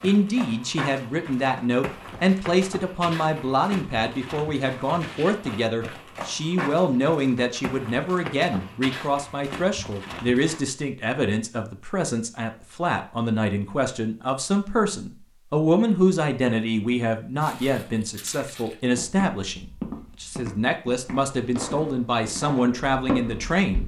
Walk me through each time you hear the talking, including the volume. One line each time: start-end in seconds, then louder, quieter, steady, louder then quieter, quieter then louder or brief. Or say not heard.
0.0-23.8 steady.